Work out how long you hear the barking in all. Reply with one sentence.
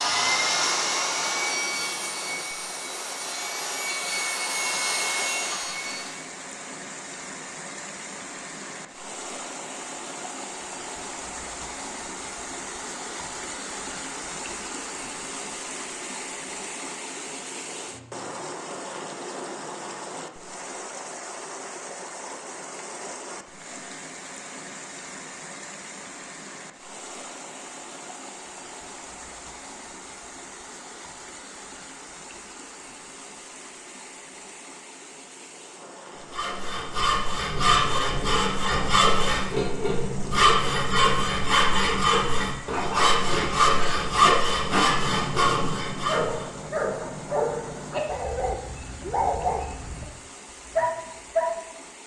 The barking can be heard for 8 seconds in total.